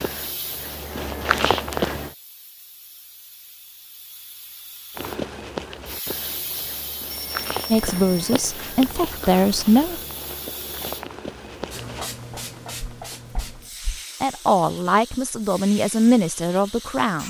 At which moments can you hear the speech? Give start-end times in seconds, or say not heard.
7.7-10.0, 14.2-17.2.